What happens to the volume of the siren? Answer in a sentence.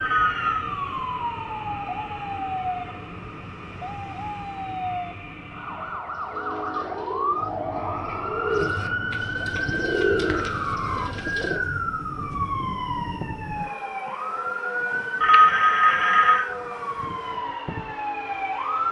The loudness of the siren stays about the same.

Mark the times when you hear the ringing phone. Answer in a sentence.
The ringing phone can be heard from 0.0 to 0.7 s and from 15.2 to 16.4 s.